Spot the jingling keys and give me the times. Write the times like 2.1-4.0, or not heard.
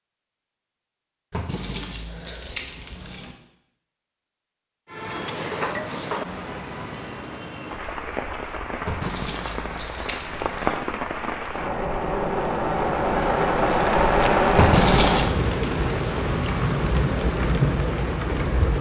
1.3-3.3, 8.8-10.8, 14.6-15.2.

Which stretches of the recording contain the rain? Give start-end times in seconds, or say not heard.
4.8-18.7.